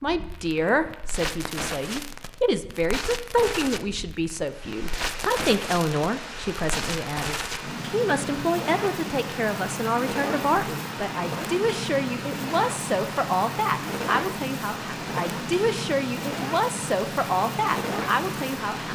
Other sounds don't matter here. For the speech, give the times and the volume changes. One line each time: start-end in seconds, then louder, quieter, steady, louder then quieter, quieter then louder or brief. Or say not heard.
0.0-18.9 steady.